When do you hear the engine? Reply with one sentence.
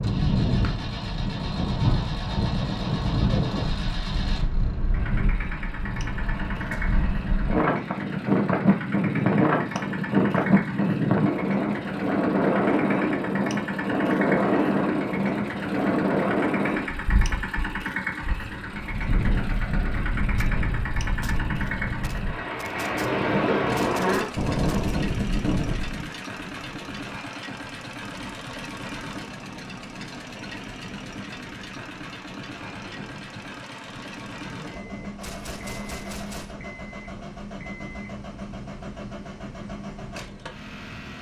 You can hear the engine from 0.0 to 41.1 s.